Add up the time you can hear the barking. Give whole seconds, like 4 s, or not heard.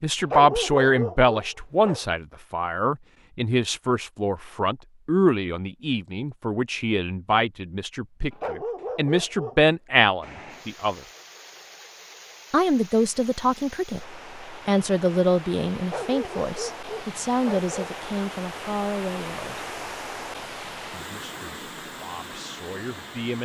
5 s.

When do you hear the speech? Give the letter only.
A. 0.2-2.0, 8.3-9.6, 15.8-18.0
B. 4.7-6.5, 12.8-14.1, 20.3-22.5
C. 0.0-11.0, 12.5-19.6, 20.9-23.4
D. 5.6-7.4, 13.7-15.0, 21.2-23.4
C.